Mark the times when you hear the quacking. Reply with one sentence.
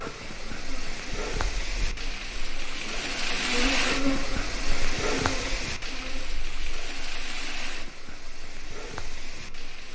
The quacking can't be heard in this clip.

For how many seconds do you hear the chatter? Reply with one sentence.
You can't hear the chatter here.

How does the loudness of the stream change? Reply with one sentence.
The volume of the stream goes up, then down.